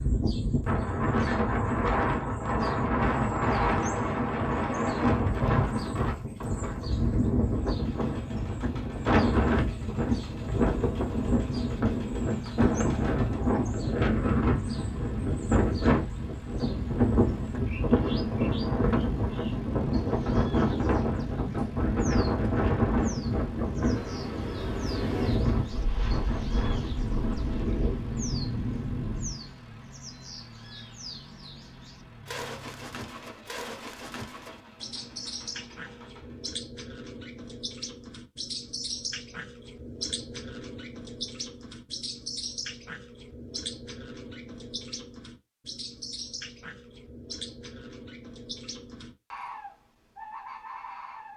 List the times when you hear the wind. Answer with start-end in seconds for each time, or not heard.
0.0-29.4.